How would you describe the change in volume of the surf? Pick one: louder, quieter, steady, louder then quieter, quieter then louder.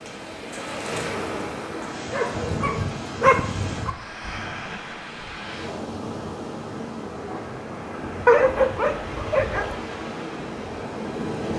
steady.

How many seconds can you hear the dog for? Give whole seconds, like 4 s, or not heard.
3 s.